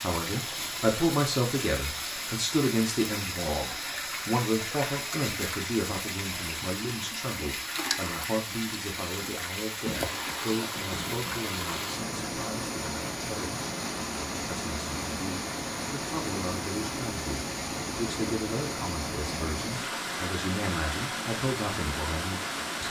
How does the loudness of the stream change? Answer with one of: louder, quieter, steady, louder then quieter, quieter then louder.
steady.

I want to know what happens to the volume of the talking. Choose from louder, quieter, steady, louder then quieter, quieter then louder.
quieter.